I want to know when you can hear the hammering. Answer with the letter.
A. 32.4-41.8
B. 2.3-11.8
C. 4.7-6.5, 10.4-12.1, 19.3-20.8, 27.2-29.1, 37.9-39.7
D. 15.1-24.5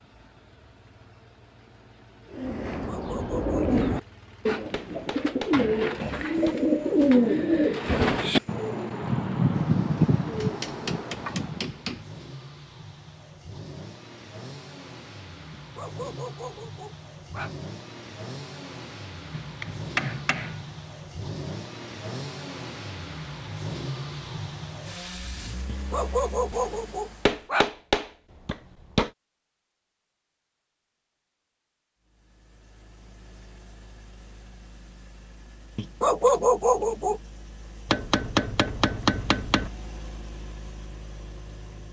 C.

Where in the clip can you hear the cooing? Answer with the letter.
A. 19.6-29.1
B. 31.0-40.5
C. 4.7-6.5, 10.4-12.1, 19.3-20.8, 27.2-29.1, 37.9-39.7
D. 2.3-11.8
D.